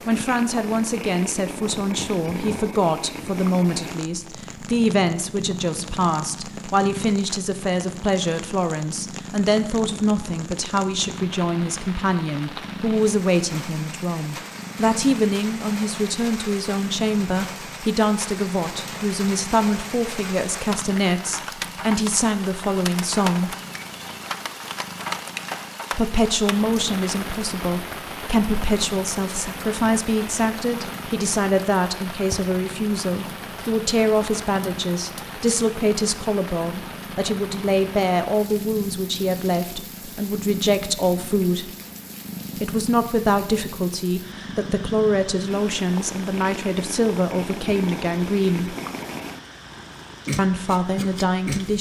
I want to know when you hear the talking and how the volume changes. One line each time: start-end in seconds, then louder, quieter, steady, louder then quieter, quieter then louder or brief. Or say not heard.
0.1-23.6 steady
25.9-41.7 steady
42.6-48.8 steady
50.4-51.7 brief.